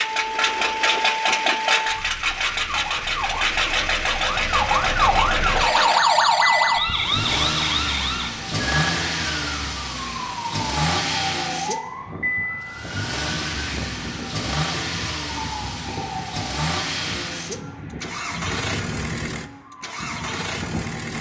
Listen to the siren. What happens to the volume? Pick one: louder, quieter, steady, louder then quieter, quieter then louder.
louder then quieter.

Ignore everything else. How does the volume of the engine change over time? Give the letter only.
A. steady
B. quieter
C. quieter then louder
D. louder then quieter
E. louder
B.